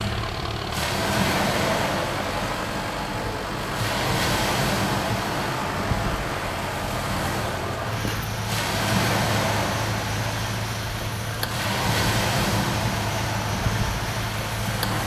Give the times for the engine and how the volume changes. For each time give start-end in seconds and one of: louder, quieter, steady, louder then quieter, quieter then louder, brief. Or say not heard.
0.0-15.0 steady.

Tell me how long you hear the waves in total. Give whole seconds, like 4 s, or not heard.
15 s.